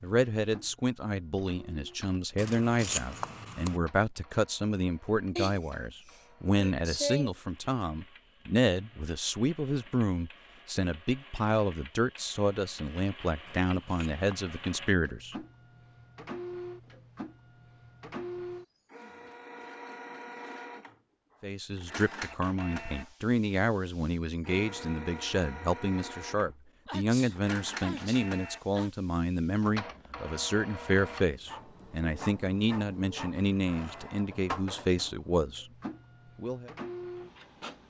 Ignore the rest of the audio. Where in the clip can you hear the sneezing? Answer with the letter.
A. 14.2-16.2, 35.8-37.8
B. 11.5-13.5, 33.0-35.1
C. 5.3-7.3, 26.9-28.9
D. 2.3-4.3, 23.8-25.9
C.